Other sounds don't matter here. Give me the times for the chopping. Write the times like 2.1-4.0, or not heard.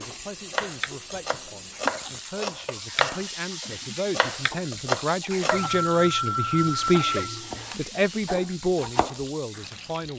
0.0-5.7, 7.3-9.9.